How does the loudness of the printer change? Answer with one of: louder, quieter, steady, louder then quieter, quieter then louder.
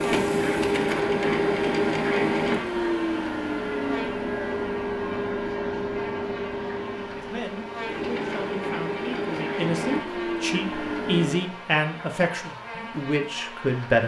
quieter.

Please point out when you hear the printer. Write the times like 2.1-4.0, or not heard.
0.0-11.4.